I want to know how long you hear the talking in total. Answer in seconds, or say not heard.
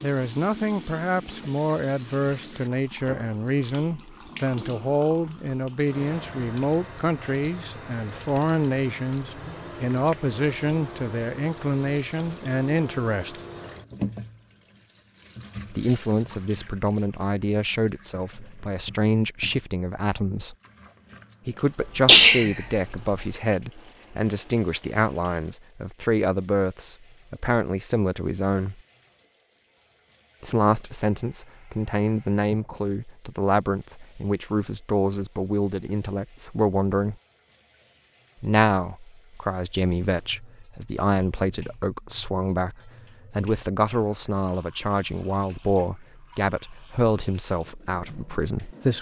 43 s.